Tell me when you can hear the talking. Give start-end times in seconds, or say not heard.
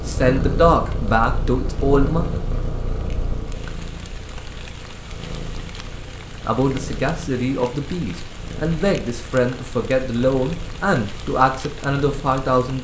0.1-2.2, 6.5-12.7.